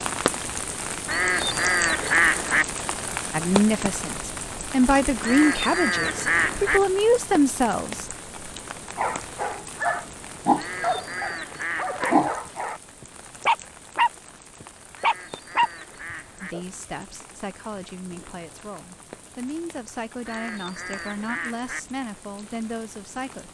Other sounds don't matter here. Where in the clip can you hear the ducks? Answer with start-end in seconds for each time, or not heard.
1.1-2.6, 5.2-6.8, 10.6-12.2, 14.9-16.6, 20.2-21.8.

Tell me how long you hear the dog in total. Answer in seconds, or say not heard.
8 s.